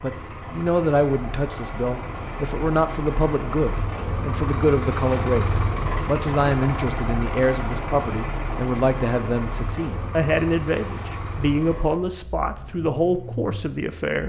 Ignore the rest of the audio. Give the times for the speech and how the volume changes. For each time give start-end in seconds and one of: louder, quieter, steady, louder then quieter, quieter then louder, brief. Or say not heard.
0.0-14.2 steady.